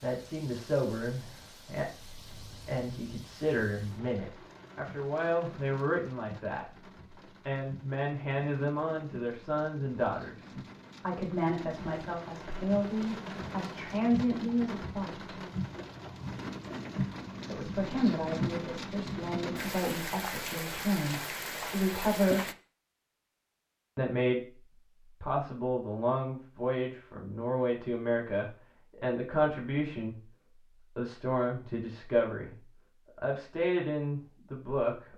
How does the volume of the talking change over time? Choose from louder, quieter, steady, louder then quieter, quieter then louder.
steady.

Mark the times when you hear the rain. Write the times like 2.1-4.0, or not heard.
0.0-22.6.